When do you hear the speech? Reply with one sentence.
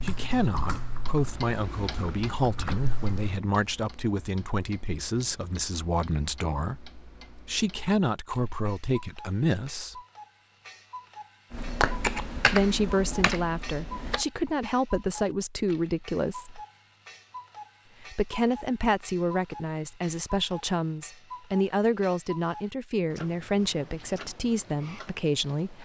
The speech can be heard from 0.0 to 9.9 s, from 12.5 to 16.6 s and from 18.0 to 25.8 s.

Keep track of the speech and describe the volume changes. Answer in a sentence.
The loudness of the speech stays about the same.